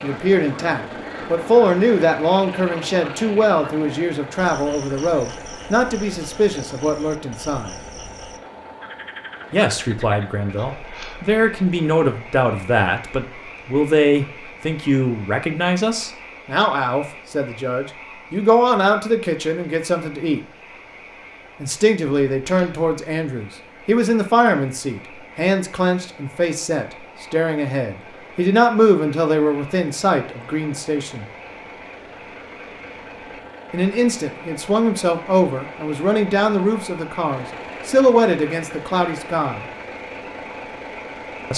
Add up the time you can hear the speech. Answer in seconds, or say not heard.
34 s.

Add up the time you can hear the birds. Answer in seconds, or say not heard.
not heard.